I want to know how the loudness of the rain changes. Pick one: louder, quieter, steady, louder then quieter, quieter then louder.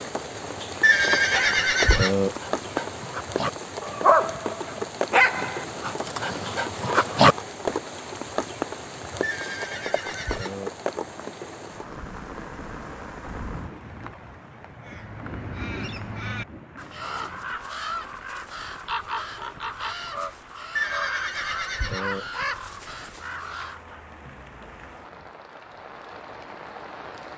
quieter.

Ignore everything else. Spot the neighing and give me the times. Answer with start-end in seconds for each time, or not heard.
0.8-2.4, 9.2-10.7, 20.8-22.2.